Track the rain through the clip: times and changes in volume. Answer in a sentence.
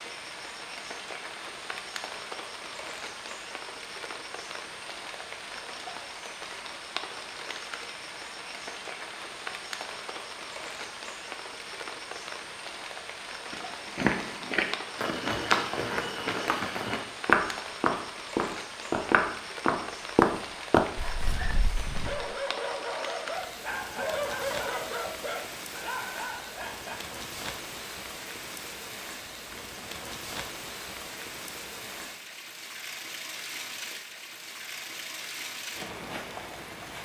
The rain can be heard from 0.0 to 36.9 s, at a steady volume.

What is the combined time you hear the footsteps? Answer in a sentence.
The footsteps can be heard for 9 seconds in total.